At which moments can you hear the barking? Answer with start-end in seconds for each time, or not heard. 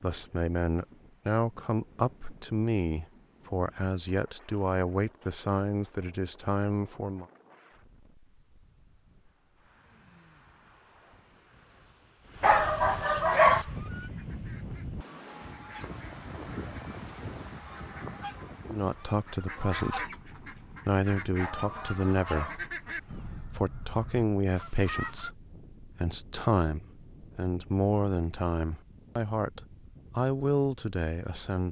12.4-13.7, 21.4-22.6.